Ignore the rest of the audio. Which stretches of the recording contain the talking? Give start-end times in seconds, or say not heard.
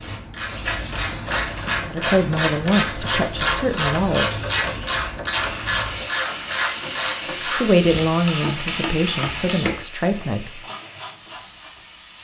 1.9-4.3, 7.5-10.6.